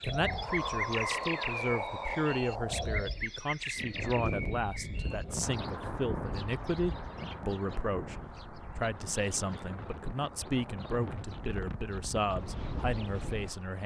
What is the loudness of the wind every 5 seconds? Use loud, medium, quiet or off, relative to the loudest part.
loud, medium, medium.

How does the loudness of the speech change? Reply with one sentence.
The volume of the speech stays about the same.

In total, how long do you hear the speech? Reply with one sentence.
The speech can be heard for 14 seconds in total.